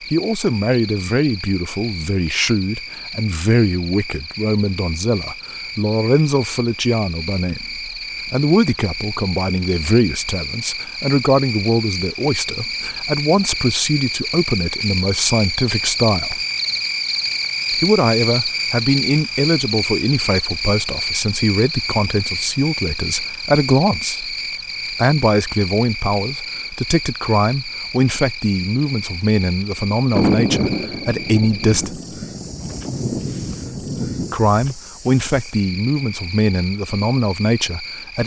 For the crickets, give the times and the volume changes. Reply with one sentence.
You can hear the crickets from 0.0 to 38.2 s, getting louder then quieter.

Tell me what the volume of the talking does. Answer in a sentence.
The volume of the talking stays about the same.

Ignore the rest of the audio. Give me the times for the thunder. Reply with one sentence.
You can hear the thunder from 30.1 to 34.4 s.